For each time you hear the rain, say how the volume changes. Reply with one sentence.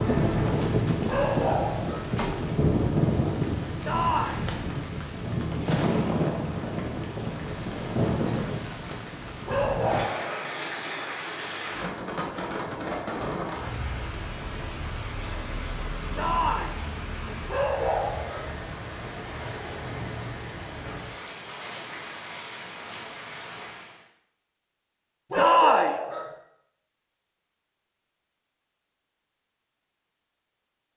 You can hear the rain from 0.0 to 24.1 s, getting quieter.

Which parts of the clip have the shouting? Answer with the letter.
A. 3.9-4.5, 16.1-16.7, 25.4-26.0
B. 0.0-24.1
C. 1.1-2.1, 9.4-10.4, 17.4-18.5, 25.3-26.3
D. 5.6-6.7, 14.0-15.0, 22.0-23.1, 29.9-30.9
A.